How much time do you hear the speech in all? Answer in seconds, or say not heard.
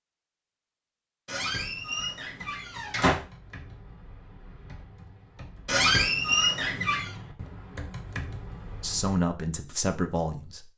2 s.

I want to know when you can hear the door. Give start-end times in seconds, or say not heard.
1.2-3.1, 5.7-7.2.